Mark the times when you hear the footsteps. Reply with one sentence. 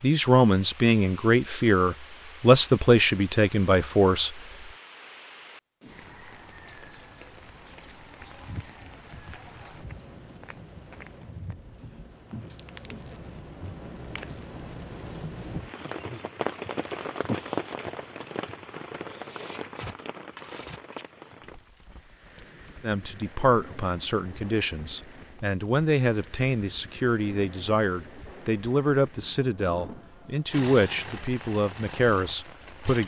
You can hear the footsteps from 8.1 to 13.8 s.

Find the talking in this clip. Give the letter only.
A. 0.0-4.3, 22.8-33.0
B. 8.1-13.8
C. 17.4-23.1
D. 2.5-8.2
A.